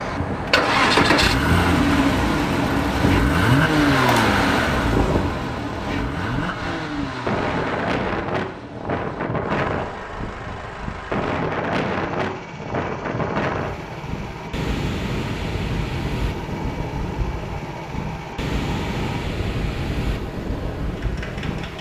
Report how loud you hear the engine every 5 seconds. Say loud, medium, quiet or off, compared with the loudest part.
loud, medium, quiet, quiet, quiet.